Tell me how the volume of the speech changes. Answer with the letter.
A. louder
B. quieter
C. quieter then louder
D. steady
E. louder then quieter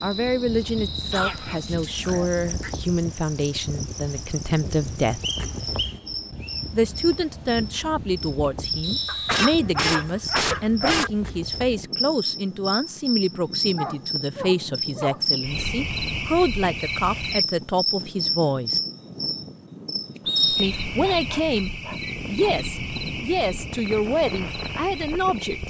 D.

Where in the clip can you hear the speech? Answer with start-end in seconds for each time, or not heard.
0.0-5.2, 6.7-18.8, 20.6-25.6.